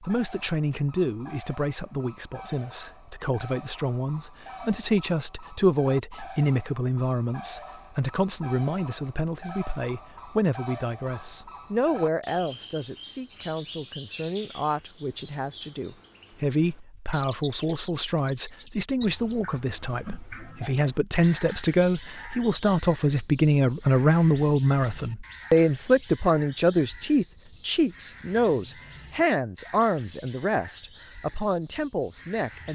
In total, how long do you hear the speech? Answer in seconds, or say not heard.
33 s.